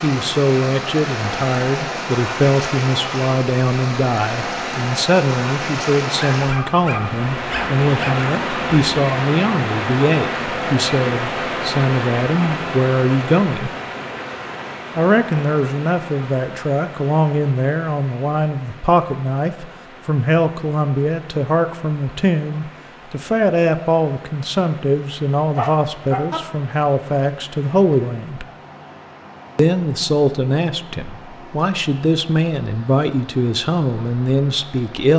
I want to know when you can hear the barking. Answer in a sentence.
The barking can be heard from 6.2 to 8.2 s and from 25.6 to 26.4 s.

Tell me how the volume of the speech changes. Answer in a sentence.
The loudness of the speech stays about the same.